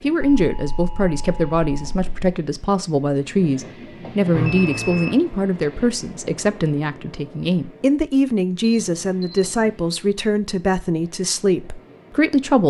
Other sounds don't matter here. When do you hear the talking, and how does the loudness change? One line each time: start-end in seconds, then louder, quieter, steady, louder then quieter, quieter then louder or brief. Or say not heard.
0.0-12.6 steady.